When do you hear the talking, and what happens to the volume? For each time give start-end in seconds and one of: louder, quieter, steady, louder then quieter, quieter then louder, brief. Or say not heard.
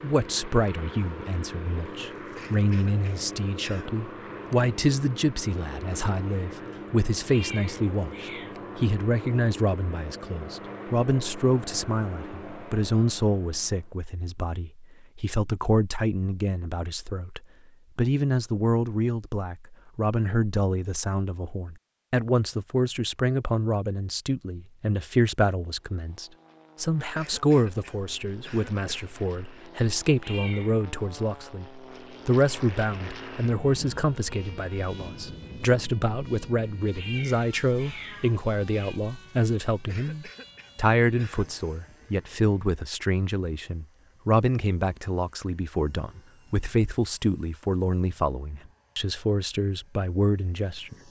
0.0-51.0 steady.